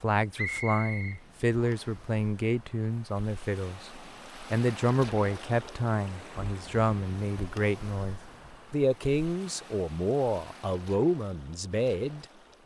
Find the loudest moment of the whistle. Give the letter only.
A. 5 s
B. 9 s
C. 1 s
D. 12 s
C.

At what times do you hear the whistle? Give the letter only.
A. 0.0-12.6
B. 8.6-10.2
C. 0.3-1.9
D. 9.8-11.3
C.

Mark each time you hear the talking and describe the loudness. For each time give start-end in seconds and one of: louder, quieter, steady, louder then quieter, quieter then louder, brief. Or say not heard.
0.0-12.6 steady.